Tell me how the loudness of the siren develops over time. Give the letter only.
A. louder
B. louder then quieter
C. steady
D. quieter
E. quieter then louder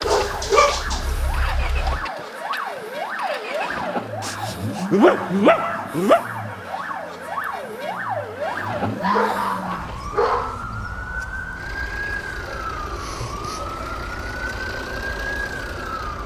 C.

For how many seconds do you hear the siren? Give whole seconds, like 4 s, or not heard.
16 s.